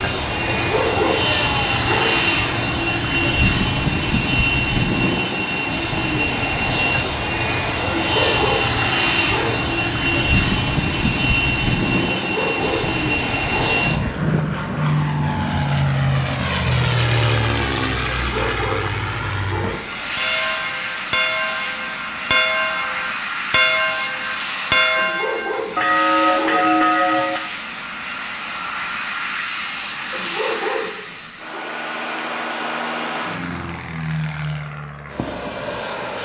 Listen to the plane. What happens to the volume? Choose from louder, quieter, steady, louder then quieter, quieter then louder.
quieter.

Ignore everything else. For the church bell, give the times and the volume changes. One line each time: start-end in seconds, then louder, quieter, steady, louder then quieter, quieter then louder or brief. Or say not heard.
20.1-27.5 louder.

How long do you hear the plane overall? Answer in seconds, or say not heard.
36 s.